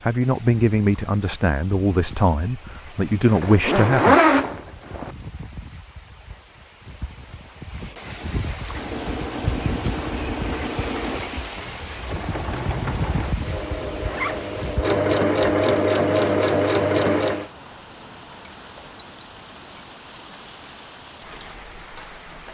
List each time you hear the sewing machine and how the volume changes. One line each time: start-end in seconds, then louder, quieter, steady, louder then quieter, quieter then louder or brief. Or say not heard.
8.7-17.5 louder.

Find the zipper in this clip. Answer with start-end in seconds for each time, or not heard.
3.3-5.1, 14.1-14.5.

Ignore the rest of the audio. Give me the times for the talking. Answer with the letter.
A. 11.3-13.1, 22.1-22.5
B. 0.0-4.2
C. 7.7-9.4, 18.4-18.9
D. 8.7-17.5
B.